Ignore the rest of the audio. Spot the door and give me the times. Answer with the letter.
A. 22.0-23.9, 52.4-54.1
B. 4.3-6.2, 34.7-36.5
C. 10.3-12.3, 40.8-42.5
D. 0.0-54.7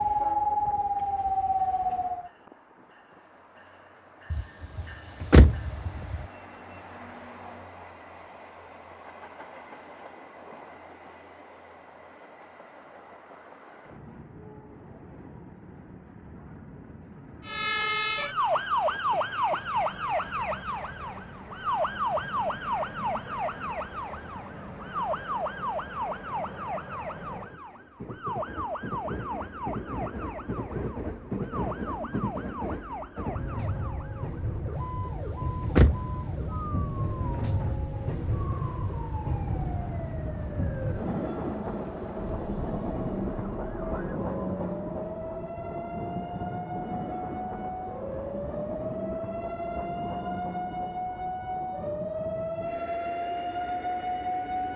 B.